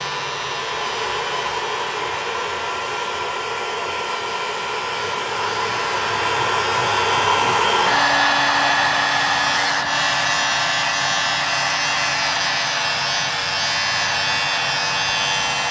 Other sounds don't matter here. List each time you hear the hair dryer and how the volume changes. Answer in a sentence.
You can hear the hair dryer from 0.0 to 15.6 s, getting louder then quieter.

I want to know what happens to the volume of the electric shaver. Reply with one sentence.
The volume of the electric shaver goes up.